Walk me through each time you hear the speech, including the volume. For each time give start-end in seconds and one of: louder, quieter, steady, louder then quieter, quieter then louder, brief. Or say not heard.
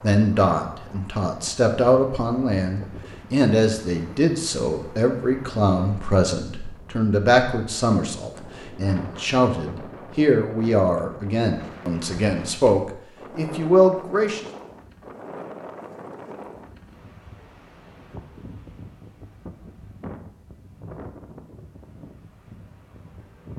0.0-14.4 steady.